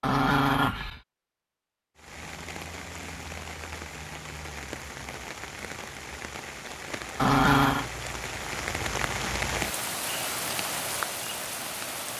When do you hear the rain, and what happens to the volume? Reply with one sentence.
The rain can be heard from 1.9 to 12.1 s, getting louder.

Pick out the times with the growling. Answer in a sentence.
The growling can be heard from 0.0 to 1.0 s and from 7.2 to 7.8 s.